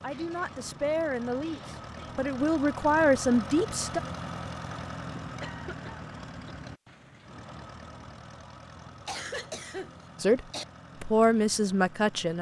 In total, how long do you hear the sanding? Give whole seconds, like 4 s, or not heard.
not heard.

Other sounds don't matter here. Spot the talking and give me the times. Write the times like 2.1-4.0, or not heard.
0.0-4.0, 10.2-12.3.